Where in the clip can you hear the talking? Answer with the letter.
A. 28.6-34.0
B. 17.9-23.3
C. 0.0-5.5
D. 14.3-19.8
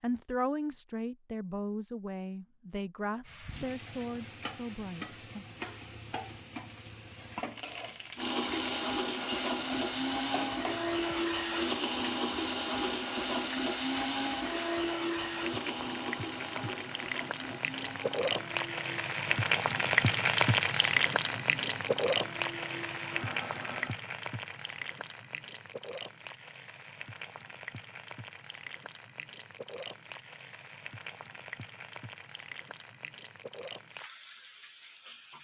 C.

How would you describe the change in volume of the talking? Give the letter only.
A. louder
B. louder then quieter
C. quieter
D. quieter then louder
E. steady
C.